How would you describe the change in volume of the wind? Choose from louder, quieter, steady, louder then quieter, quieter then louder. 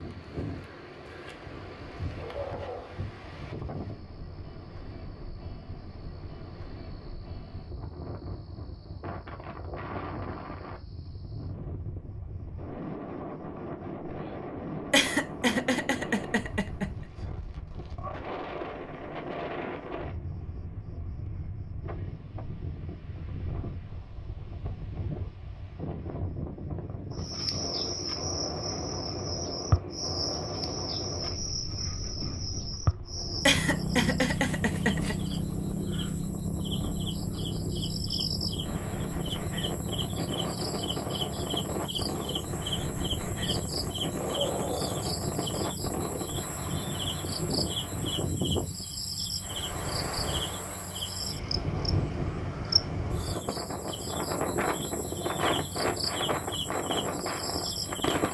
louder.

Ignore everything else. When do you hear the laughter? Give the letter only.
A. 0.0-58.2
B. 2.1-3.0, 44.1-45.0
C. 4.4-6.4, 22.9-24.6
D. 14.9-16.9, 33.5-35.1
D.